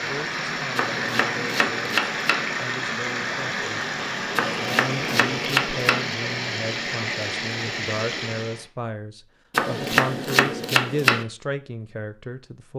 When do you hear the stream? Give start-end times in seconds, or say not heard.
0.0-8.7.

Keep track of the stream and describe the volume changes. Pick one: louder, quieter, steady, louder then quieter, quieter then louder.
steady.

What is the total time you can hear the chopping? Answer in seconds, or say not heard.
5 s.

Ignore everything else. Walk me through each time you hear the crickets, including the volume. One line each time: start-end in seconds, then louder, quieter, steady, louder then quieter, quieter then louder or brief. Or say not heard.
not heard.